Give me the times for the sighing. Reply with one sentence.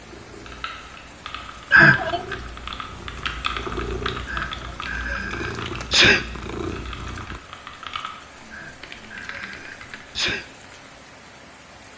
You can't hear the sighing here.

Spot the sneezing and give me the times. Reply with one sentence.
The sneezing can be heard from 1.7 to 2.4 s, from 4.3 to 6.2 s and from 8.5 to 10.4 s.